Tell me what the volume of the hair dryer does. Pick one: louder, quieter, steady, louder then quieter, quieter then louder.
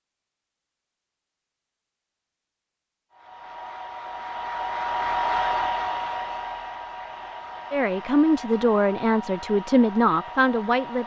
louder then quieter.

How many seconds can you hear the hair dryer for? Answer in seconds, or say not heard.
8 s.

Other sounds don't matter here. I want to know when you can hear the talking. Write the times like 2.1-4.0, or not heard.
7.7-11.0.